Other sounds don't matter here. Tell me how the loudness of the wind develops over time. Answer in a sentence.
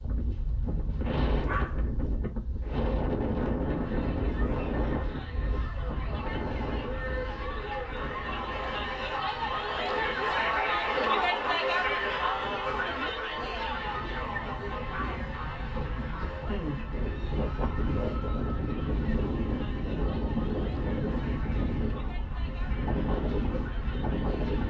The volume of the wind goes down, then up.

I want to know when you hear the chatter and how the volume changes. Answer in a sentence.
The chatter can be heard from 3.6 to 24.6 s, getting louder then quieter.